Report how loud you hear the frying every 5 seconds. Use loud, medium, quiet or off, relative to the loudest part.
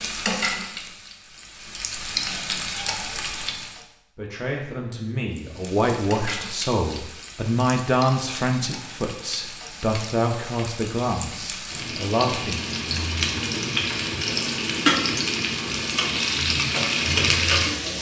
medium, quiet, loud, loud.